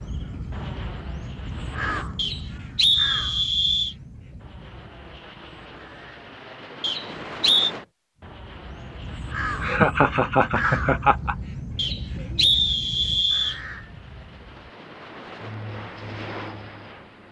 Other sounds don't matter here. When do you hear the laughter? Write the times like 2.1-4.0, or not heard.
9.6-11.3.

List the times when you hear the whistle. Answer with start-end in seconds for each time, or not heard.
2.1-4.0, 6.8-7.7, 11.8-13.6.